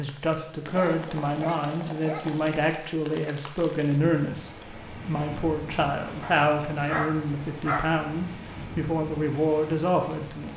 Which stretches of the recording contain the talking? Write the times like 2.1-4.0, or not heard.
0.0-10.5.